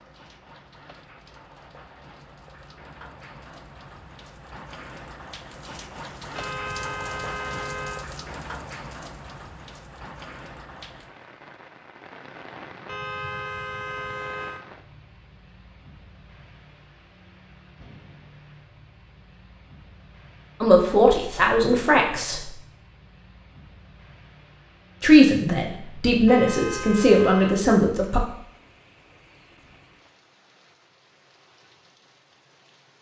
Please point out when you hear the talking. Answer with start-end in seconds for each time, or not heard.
20.6-22.5, 25.0-28.2.